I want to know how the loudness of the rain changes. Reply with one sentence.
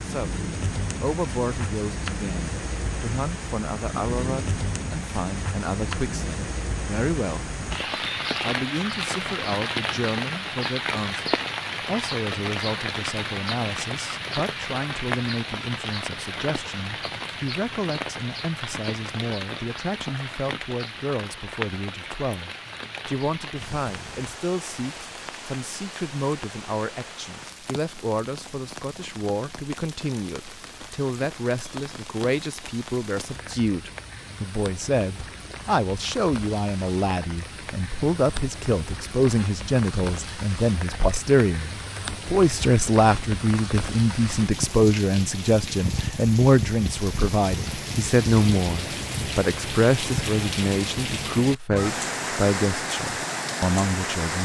The loudness of the rain goes down, then up.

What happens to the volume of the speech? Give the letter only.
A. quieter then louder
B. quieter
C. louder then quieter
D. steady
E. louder
E.